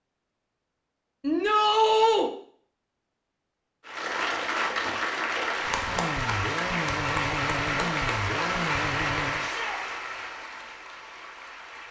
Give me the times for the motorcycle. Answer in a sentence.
You can hear the motorcycle from 5.6 to 9.5 s.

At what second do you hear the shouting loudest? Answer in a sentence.
The loudest moment of the shouting is at 2 seconds.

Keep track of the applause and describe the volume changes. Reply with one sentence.
The loudness of the applause goes down.